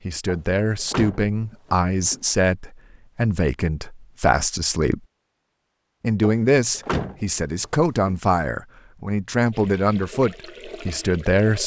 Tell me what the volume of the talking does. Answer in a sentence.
The volume of the talking stays about the same.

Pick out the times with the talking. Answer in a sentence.
The talking can be heard from 0.1 to 5.0 s and from 6.0 to 11.6 s.